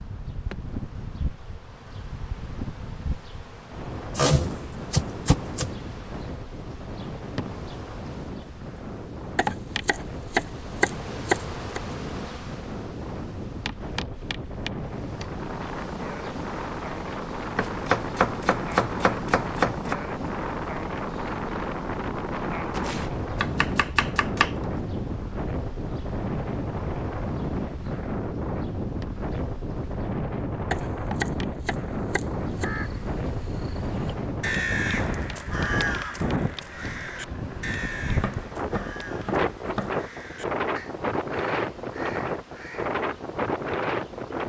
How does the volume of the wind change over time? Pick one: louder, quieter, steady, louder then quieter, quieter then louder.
louder.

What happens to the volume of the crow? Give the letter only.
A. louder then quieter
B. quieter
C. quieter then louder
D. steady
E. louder
B.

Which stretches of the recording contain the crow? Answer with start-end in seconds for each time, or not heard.
32.5-43.0.